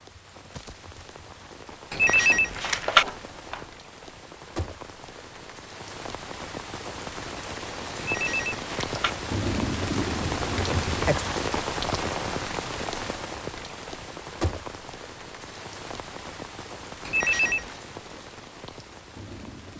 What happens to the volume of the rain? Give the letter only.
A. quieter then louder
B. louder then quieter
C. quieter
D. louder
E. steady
B.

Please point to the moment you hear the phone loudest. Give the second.
3 s.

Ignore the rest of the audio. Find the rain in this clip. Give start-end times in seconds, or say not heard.
0.0-19.7.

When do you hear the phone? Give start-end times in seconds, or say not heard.
1.9-3.6, 8.0-9.2, 17.1-17.8.